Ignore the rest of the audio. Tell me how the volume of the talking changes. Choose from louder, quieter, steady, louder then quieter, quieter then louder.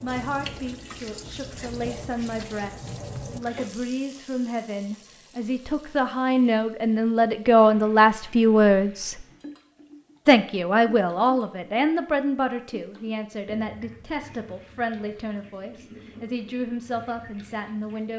louder then quieter.